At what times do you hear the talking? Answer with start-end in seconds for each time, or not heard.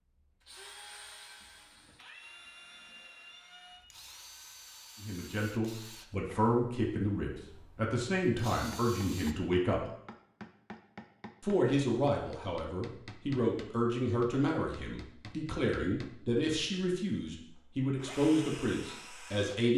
5.0-9.9, 11.4-19.7.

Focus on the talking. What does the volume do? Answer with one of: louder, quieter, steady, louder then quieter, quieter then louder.
steady.